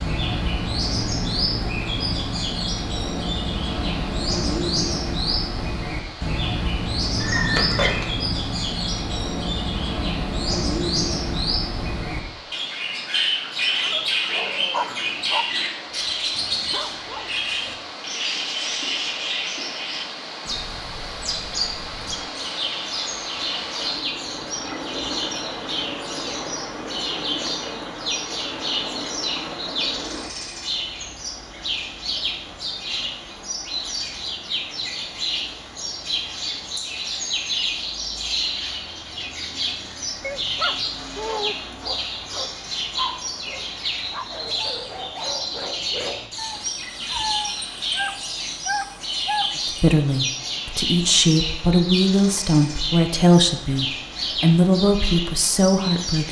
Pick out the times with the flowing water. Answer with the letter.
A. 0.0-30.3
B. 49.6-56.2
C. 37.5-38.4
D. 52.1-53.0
A.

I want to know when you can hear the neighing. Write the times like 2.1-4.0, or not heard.
7.2-8.1.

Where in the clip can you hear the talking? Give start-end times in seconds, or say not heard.
49.6-56.2.